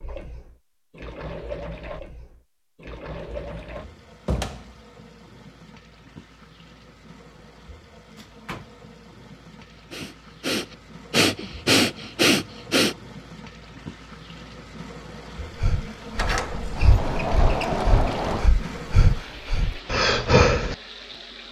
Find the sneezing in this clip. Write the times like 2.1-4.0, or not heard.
not heard.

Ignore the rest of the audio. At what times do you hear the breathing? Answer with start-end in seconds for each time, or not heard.
9.7-12.9, 15.6-20.8.